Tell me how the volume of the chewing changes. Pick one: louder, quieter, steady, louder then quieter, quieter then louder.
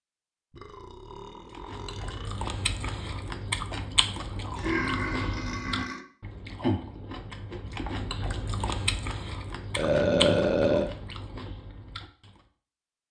steady.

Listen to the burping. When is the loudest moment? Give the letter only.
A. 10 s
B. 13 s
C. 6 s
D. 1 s
A.